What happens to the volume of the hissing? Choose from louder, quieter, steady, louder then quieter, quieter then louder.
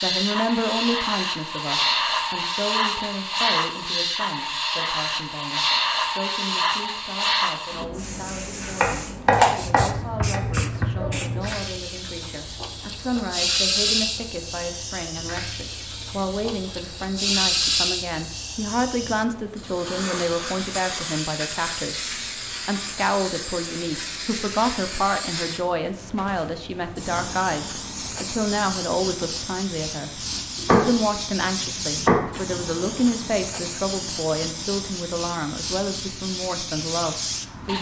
quieter.